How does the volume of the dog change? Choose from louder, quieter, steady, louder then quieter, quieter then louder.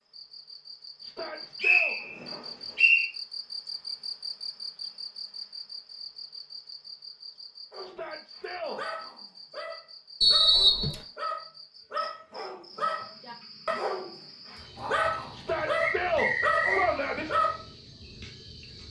louder.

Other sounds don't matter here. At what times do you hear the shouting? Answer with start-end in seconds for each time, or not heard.
1.0-2.0, 7.8-8.8, 15.3-17.2.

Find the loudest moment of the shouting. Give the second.
16 s.